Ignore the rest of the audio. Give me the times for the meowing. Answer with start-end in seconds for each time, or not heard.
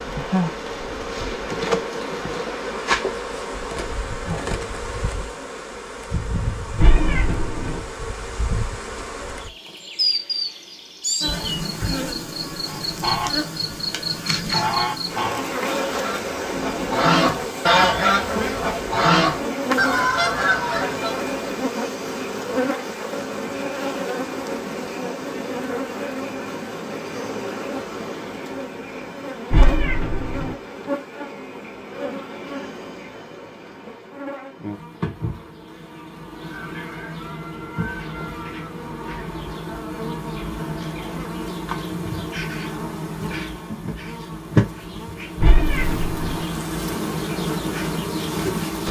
6.8-7.8, 29.5-30.6, 45.4-46.4.